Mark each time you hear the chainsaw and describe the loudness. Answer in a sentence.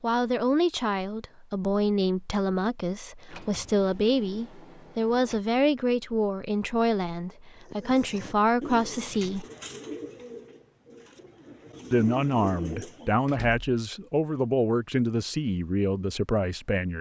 You can't hear the chainsaw here.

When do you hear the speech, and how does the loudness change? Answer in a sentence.
The speech can be heard from 0.0 to 9.4 s, at a steady volume; and from 11.9 to 16.9 s, at a steady volume.